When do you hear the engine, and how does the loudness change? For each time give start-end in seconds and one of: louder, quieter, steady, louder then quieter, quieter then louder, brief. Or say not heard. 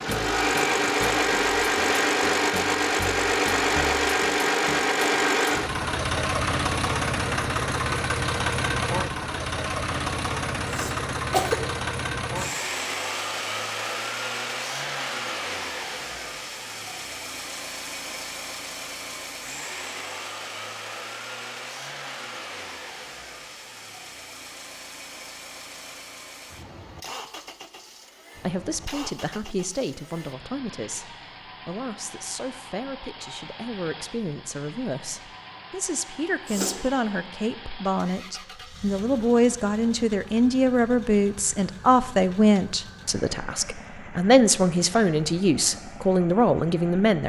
0.0-47.2 quieter.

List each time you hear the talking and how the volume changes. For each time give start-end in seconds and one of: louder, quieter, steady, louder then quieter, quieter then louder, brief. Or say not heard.
28.4-47.2 louder.